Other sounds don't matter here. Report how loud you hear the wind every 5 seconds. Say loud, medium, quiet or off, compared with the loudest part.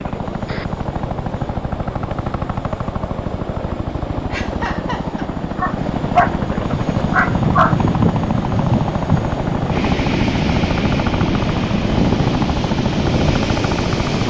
off, loud, loud.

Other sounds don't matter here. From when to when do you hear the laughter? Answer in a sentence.
You can hear the laughter from 4.3 to 5.2 s.